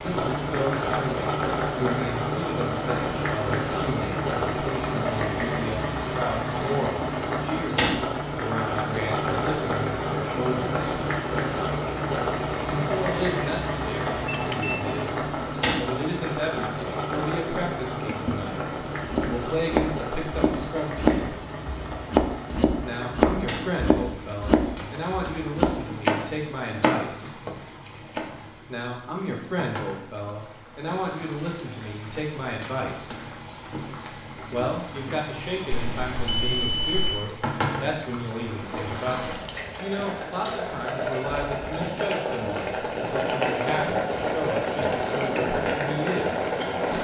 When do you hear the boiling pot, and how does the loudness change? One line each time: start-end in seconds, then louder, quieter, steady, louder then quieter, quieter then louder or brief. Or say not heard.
0.0-46.9 quieter then louder.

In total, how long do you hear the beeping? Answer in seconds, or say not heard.
2 s.